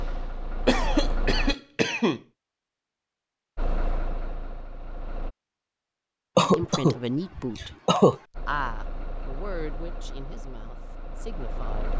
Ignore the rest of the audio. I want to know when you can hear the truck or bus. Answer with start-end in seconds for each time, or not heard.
0.0-1.6, 3.5-5.3, 8.3-11.9.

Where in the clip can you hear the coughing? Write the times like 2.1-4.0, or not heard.
0.7-2.2, 6.3-8.2.